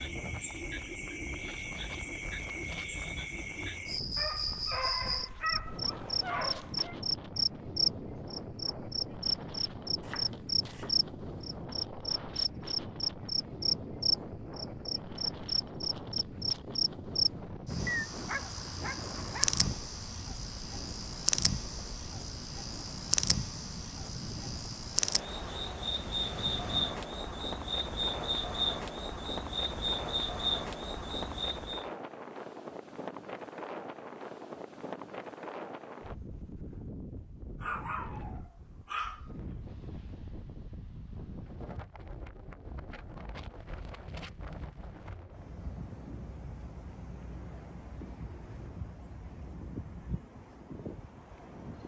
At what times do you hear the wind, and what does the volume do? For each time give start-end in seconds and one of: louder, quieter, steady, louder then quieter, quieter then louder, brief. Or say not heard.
0.0-51.8 steady.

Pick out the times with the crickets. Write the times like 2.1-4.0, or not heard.
0.0-31.9.